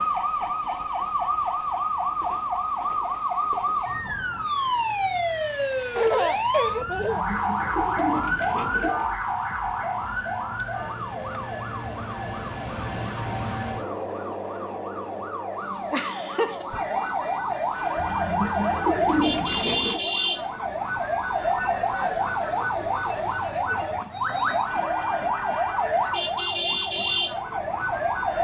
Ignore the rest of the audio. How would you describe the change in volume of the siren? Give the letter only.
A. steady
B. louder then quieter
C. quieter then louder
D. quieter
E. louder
C.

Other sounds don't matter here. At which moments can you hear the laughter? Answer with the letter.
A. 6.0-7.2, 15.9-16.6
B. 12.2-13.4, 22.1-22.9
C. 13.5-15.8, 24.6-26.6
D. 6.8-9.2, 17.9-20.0
A.